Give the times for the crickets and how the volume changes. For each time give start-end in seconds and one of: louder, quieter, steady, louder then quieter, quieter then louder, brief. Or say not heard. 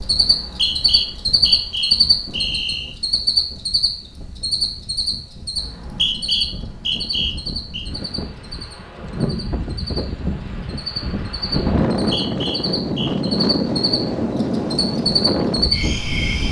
0.0-16.4 quieter then louder.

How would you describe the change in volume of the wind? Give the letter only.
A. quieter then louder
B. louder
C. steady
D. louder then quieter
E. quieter
B.